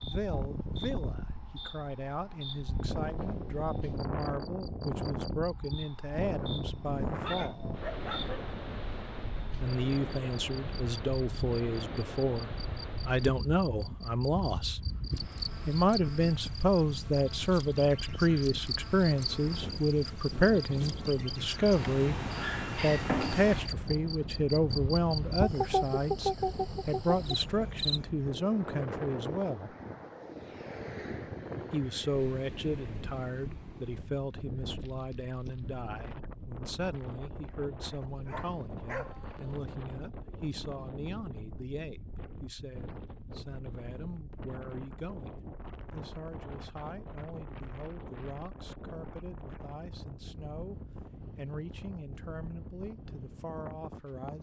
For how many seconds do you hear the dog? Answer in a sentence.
You can hear the dog for 3 seconds altogether.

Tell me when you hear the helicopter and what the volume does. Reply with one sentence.
The helicopter can't be heard in this clip.